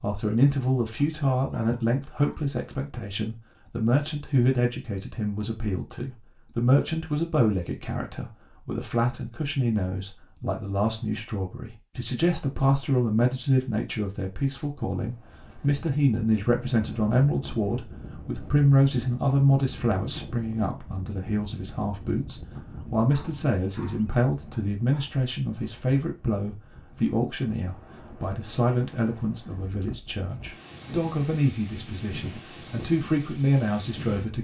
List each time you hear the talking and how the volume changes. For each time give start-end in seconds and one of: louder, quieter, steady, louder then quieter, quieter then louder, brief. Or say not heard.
0.0-34.3 steady.